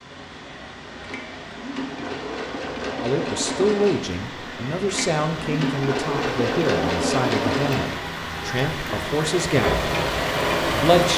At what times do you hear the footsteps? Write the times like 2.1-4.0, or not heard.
not heard.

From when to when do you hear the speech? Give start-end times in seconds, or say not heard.
3.0-9.8, 10.7-11.1.